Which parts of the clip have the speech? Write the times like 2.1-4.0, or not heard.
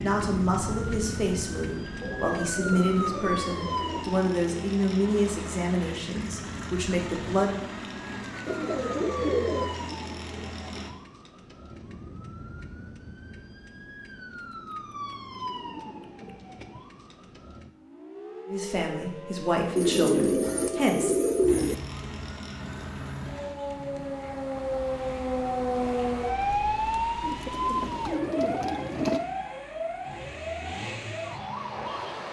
0.0-7.7, 18.4-21.1.